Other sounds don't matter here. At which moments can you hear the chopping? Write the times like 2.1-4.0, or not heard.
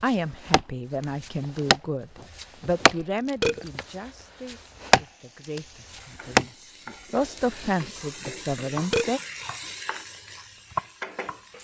0.5-9.7, 10.3-11.4.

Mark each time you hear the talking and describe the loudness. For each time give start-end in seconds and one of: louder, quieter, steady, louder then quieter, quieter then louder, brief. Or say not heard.
0.0-9.2 quieter then louder.